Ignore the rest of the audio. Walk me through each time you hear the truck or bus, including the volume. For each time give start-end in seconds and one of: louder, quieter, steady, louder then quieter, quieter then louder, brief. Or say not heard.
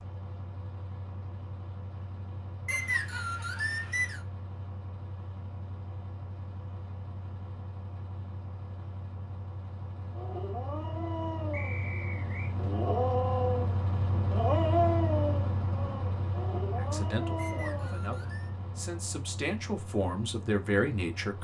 0.0-21.3 louder then quieter.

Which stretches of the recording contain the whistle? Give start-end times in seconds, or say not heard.
2.6-4.2, 11.5-12.6, 17.4-18.5.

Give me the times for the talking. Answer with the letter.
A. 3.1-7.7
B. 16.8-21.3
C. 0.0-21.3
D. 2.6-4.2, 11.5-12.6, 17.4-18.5
B.